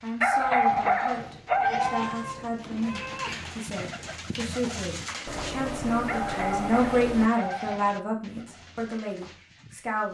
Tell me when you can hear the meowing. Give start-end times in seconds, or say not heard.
1.2-3.5, 5.2-7.3.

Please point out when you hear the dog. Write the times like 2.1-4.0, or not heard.
0.2-2.1, 6.0-8.0.